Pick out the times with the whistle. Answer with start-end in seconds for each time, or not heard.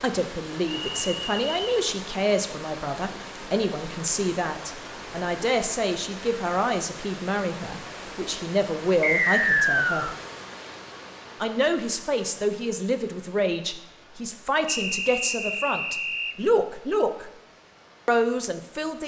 0.7-1.9, 9.0-10.2, 14.7-16.4.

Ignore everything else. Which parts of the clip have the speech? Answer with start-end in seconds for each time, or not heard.
0.0-10.1, 11.4-17.3, 18.1-19.0.